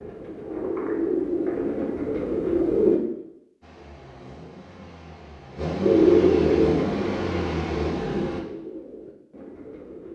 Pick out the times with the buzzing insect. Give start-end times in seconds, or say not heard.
not heard.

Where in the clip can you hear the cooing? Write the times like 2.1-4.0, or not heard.
0.0-3.0, 5.8-10.1.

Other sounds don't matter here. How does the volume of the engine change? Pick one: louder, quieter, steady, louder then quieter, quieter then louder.
louder.